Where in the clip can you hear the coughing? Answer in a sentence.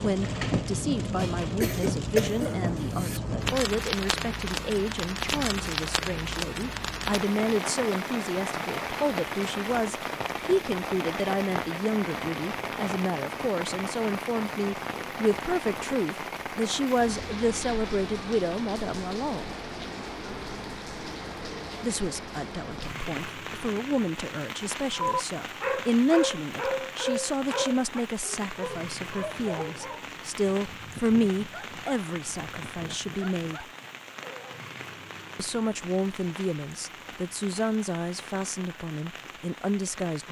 You can hear the coughing from 1.1 to 3.2 s.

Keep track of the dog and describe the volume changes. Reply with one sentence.
The loudness of the dog goes down.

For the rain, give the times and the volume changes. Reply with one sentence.
You can hear the rain from 0.0 to 40.2 s, getting quieter.